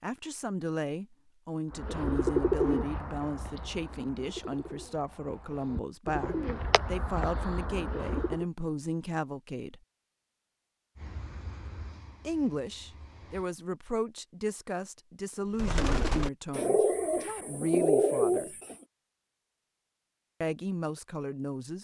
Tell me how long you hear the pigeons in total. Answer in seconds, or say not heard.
10 s.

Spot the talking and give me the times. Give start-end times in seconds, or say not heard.
0.0-9.8, 12.2-18.6, 20.4-21.7.